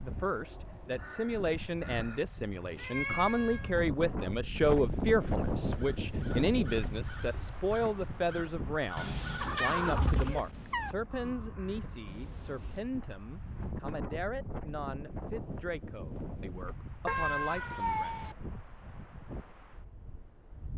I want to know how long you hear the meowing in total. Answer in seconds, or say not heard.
4 s.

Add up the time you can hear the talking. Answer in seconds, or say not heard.
18 s.